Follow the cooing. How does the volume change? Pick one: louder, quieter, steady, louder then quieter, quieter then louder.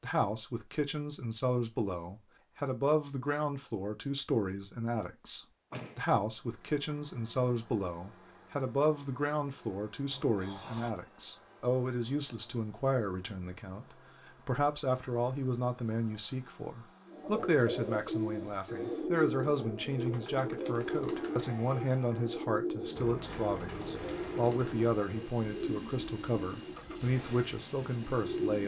quieter.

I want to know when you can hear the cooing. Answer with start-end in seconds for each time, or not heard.
17.1-28.6.